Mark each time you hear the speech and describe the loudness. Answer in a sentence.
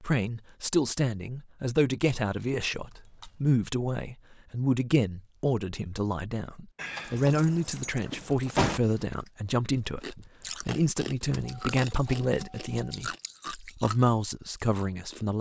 The speech can be heard from 0.0 to 15.3 s, at a steady volume.